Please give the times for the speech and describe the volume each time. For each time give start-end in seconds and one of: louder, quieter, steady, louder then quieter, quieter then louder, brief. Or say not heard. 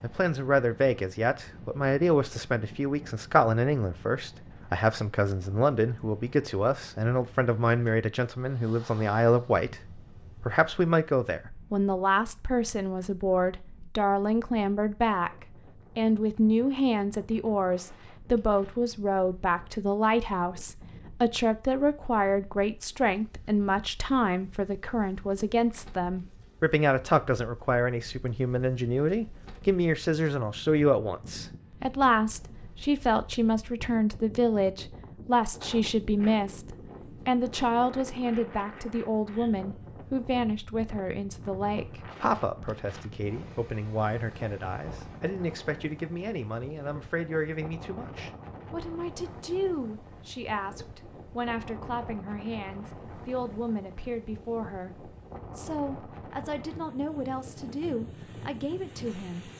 0.0-59.5 quieter.